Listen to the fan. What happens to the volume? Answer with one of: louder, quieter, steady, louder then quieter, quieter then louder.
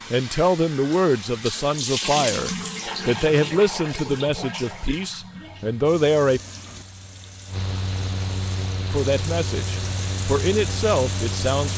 louder.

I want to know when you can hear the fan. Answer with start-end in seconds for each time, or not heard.
5.3-11.7.